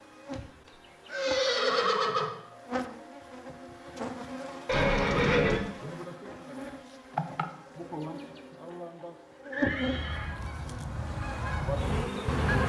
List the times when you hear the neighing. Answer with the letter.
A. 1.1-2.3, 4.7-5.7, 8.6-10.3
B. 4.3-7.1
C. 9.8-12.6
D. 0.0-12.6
A.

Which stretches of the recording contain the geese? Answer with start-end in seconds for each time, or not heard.
9.8-12.6.